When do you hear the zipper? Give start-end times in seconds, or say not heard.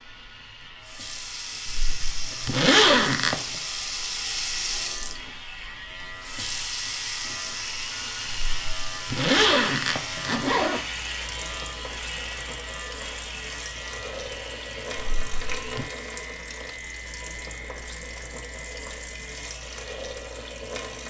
1.6-3.4, 8.3-10.8, 15.2-15.9.